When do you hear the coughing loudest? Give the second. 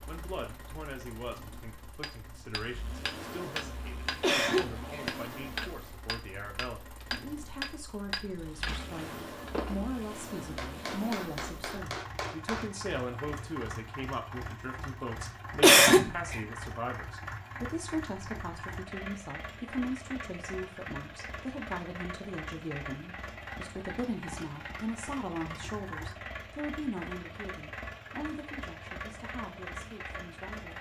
16 s.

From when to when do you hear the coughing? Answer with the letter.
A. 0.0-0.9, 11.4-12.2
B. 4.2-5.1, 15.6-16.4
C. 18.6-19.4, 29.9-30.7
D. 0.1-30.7
B.